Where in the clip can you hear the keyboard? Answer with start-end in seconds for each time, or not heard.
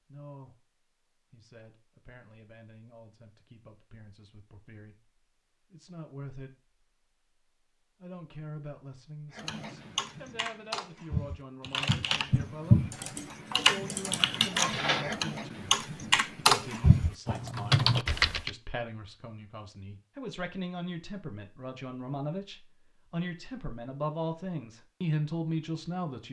9.3-18.5.